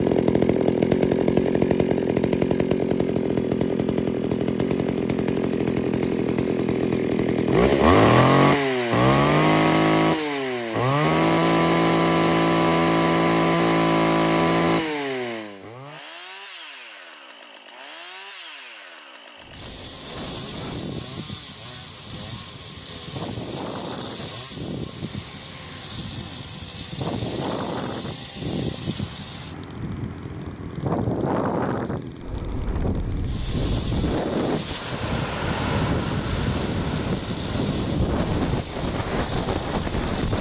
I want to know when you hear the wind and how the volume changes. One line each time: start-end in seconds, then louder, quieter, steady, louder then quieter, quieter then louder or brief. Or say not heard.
19.4-40.3 louder.